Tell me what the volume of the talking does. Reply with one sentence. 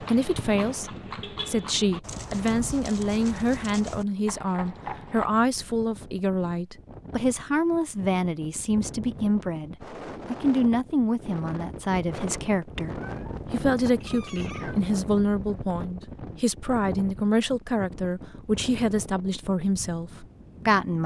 The loudness of the talking stays about the same.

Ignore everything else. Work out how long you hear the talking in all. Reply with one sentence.
The talking can be heard for 21 seconds in total.